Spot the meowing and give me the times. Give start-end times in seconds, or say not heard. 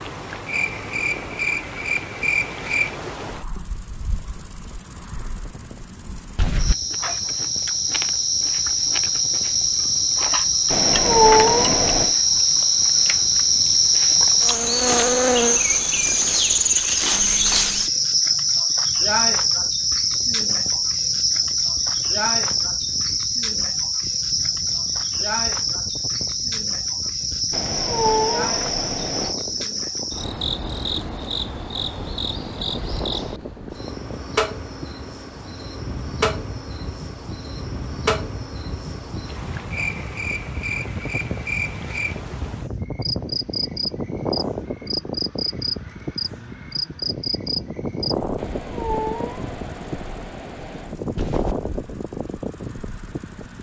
10.7-12.1, 27.5-29.4, 48.4-51.0.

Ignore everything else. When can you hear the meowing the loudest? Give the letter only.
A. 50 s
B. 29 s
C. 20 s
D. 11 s
D.